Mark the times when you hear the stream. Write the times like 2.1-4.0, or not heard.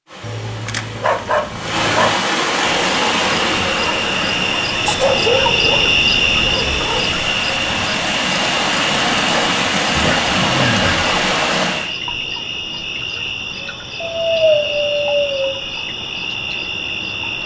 0.1-11.9.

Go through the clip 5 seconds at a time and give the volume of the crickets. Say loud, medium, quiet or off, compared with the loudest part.
loud, loud, medium, medium.